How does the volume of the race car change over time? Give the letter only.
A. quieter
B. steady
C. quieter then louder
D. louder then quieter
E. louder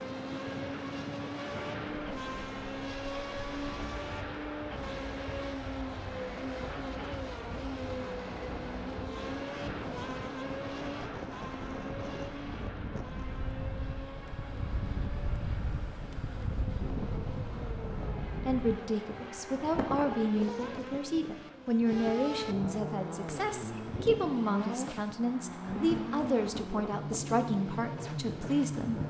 C.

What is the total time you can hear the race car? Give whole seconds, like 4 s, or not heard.
29 s.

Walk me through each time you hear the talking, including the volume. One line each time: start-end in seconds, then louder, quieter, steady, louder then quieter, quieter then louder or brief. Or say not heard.
18.4-29.0 steady.